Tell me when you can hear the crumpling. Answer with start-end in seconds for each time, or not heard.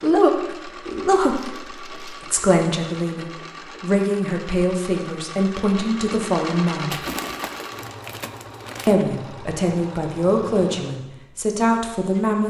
1.2-2.2, 6.9-8.9.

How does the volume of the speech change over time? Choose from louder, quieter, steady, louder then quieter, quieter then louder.
steady.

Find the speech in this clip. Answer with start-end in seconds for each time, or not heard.
0.0-7.0, 8.8-12.4.